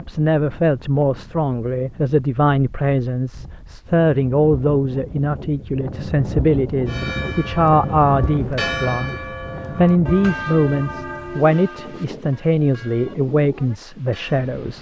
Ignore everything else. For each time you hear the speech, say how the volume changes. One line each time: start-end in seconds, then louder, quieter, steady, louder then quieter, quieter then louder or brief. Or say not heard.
0.0-14.7 steady.